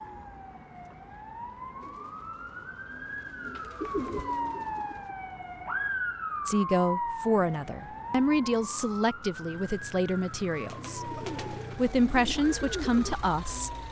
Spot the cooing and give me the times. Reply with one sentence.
The cooing can be heard from 1.8 to 5.2 s and from 10.6 to 13.8 s.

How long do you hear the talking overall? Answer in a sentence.
You can hear the talking for 7 seconds altogether.